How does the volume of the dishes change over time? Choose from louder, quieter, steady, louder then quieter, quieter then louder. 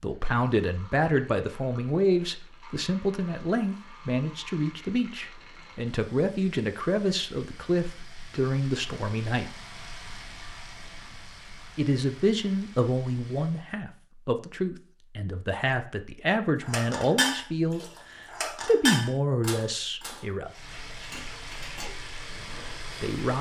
quieter.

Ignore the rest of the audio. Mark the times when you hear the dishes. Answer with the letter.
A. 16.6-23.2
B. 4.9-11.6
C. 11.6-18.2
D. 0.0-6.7
A.